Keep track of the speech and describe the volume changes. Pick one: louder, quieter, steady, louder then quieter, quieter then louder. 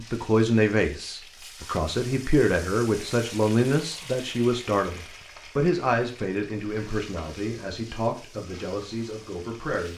quieter.